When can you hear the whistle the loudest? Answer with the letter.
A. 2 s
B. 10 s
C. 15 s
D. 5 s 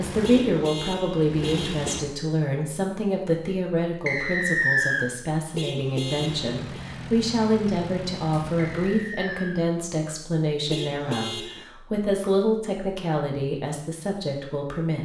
D.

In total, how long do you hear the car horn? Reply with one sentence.
The car horn can be heard for 4 seconds in total.